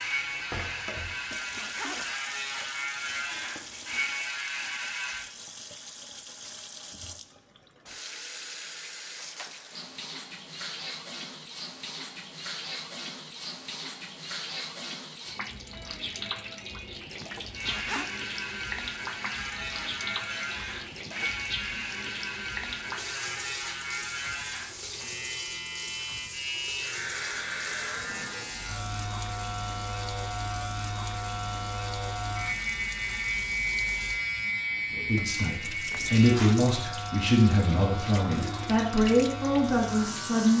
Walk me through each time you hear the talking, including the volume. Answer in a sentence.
The talking can be heard from 34.9 to 40.5 s, at a steady volume.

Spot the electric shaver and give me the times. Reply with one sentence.
You can hear the electric shaver from 0.0 to 5.2 s and from 17.5 to 40.5 s.